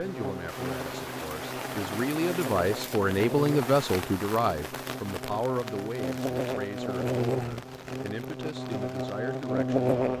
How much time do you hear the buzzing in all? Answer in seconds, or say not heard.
10 s.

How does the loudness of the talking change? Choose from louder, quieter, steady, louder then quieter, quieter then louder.
louder then quieter.